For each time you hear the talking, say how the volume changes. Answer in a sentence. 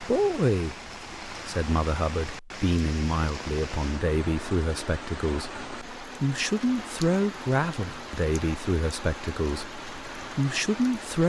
You can hear the talking from 0.0 to 11.2 s, at a steady volume.